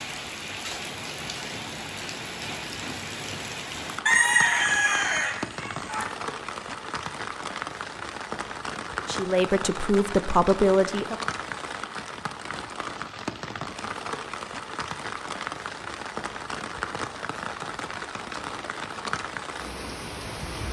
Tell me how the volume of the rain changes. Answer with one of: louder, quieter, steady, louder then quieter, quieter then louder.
steady.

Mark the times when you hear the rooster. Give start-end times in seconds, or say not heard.
4.0-6.0.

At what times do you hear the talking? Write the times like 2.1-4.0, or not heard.
9.0-11.2.